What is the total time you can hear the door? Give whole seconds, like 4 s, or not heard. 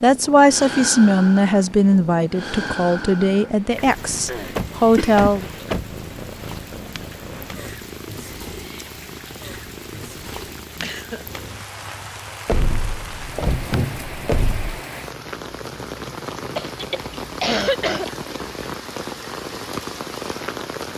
4 s.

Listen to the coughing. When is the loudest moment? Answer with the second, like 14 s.
18 s.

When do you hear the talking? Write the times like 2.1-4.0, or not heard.
0.0-5.5.